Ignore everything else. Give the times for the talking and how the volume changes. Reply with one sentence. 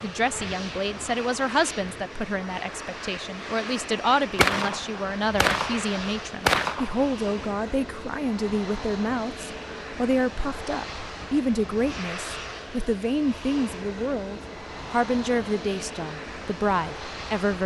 The talking can be heard from 0.0 to 17.6 s, at a steady volume.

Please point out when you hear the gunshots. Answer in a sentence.
You can hear the gunshots from 4.3 to 7.2 s.